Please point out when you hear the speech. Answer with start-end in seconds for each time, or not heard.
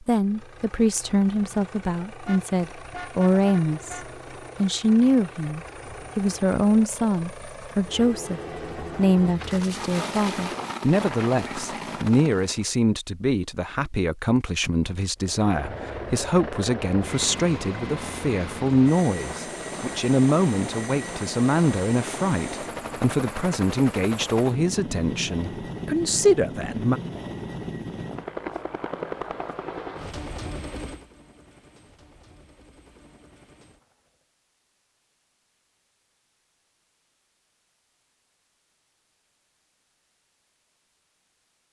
0.1-4.0, 4.6-27.0.